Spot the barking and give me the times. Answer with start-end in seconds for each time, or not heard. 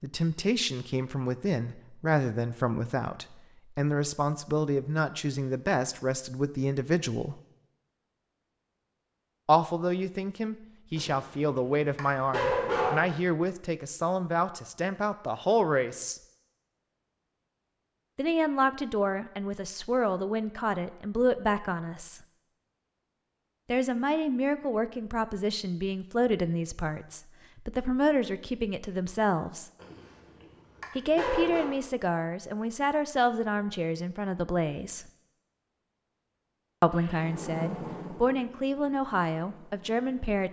10.9-13.1, 29.8-31.7.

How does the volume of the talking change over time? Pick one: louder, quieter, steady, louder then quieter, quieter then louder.
steady.